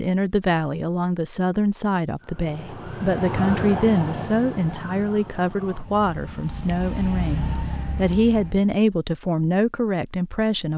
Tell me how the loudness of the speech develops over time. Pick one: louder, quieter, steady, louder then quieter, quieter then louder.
steady.